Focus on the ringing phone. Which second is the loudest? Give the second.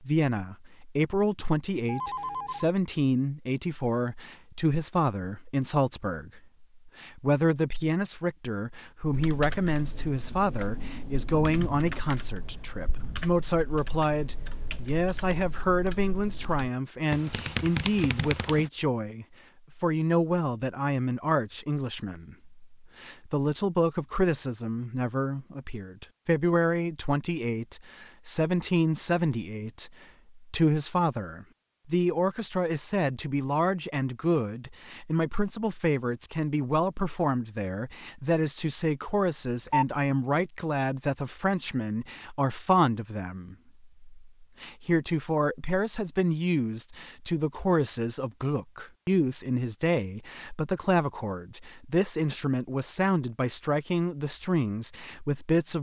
40 s.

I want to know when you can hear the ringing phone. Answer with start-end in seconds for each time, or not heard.
1.9-2.8, 39.5-40.0.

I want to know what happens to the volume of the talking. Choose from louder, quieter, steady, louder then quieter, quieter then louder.
steady.